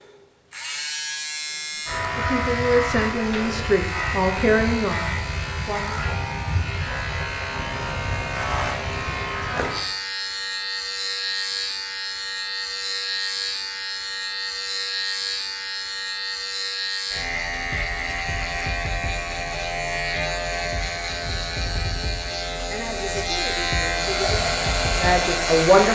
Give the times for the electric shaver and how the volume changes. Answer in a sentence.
You can hear the electric shaver from 0.0 to 25.8 s, at a steady volume.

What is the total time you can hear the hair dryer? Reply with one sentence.
You can hear the hair dryer for 2 seconds altogether.